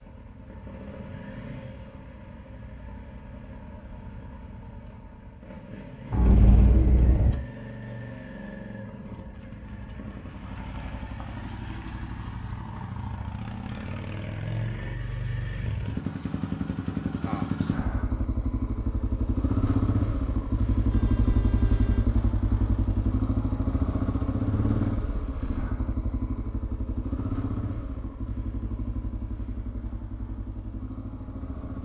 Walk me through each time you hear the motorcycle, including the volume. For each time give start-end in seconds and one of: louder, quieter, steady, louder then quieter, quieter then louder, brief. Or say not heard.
0.0-31.7 louder then quieter.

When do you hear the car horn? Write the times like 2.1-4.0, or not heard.
6.1-7.4, 20.9-22.1.